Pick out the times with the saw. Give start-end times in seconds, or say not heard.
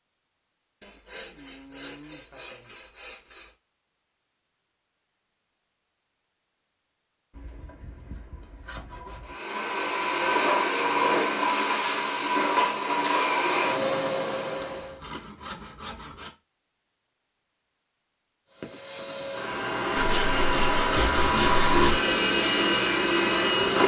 0.8-3.5, 7.3-9.3, 14.6-16.3, 19.9-21.9.